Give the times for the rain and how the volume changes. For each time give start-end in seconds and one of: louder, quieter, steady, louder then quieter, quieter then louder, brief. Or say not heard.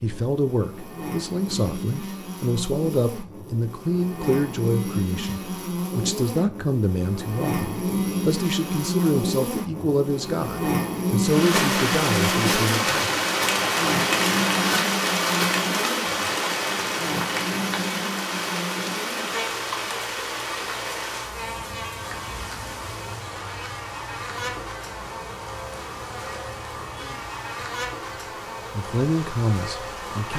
11.2-30.3 quieter.